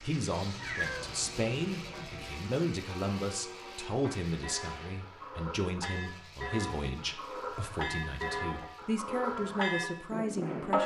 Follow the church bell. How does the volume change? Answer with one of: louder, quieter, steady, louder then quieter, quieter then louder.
louder.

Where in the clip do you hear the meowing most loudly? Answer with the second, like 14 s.
1 s.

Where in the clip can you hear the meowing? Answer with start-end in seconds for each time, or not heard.
0.5-2.3.